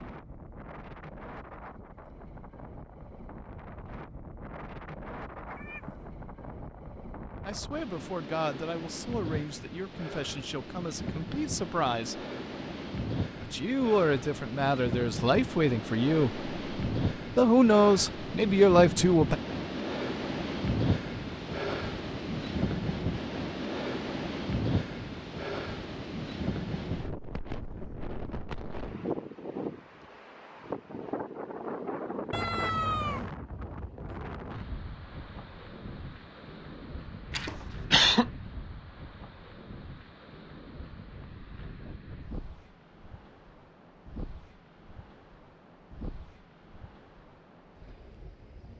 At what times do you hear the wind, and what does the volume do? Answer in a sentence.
You can hear the wind from 0.0 to 48.7 s, getting louder then quieter.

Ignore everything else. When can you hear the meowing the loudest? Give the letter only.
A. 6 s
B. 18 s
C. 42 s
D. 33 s
D.